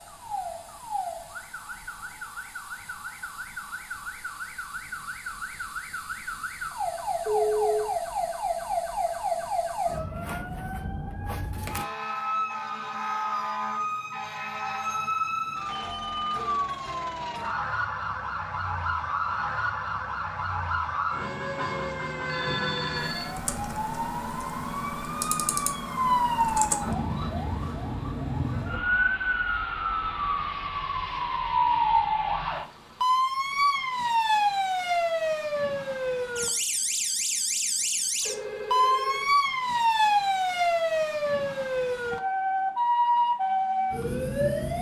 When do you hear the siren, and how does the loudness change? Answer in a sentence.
The siren can be heard from 0.0 to 44.7 s, getting louder.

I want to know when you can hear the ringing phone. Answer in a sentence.
You can hear the ringing phone from 7.2 to 7.9 s, from 22.2 to 23.4 s and from 38.2 to 39.3 s.